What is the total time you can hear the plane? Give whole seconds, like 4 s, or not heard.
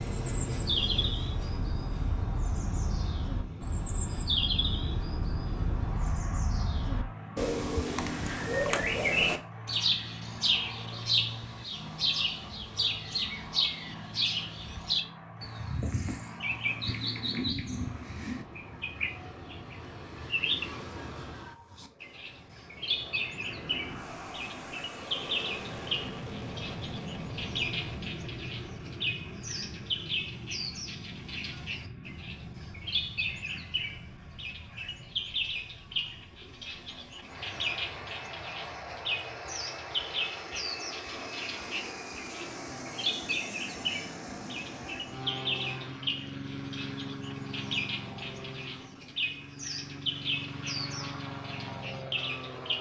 53 s.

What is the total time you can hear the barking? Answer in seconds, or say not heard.
not heard.